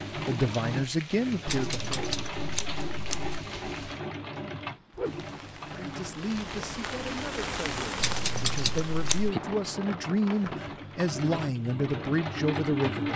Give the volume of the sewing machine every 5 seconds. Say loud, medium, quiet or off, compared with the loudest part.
loud, medium, loud.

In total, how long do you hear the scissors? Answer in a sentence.
You can hear the scissors for 3 seconds altogether.